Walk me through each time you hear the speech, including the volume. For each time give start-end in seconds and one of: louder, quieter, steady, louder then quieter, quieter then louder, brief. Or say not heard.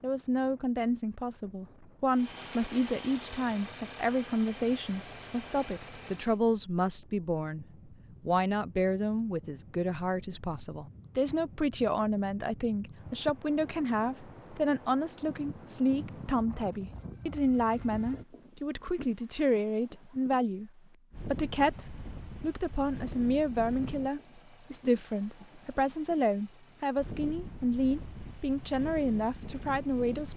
0.0-30.3 steady.